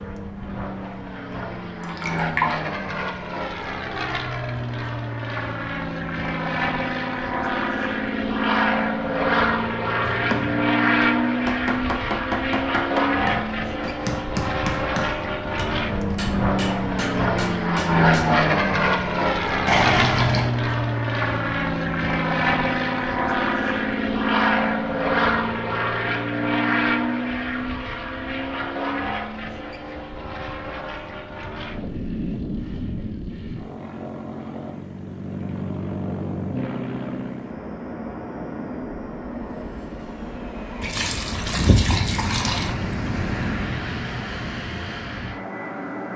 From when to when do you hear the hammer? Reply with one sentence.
The hammer can be heard from 10.0 to 18.4 s.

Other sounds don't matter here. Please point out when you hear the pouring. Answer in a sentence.
The pouring can be heard from 1.8 to 2.6 s, from 19.6 to 20.5 s and from 40.8 to 42.8 s.